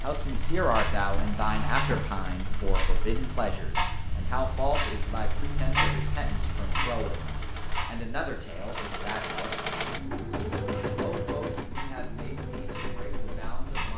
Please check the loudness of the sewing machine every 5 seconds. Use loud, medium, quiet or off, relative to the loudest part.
medium, loud, loud.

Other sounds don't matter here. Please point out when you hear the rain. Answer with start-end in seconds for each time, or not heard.
not heard.